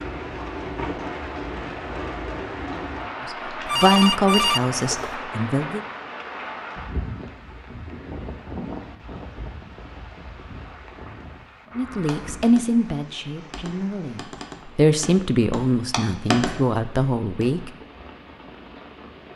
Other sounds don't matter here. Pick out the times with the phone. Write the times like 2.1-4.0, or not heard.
3.6-5.2.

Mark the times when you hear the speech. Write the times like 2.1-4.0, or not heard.
3.2-5.8, 11.8-17.7.